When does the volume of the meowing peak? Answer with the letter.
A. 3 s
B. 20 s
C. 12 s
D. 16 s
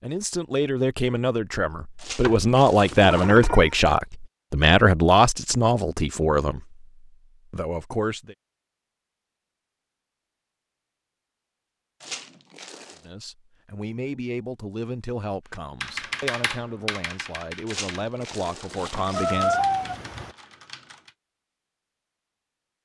B.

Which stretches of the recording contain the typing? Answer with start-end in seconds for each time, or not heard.
15.5-21.1.